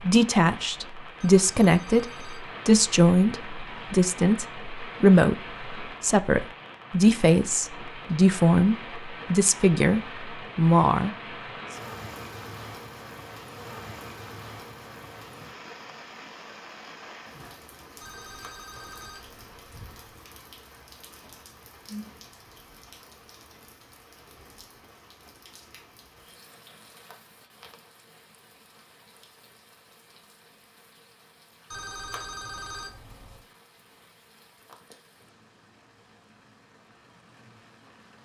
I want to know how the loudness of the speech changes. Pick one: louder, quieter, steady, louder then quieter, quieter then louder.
steady.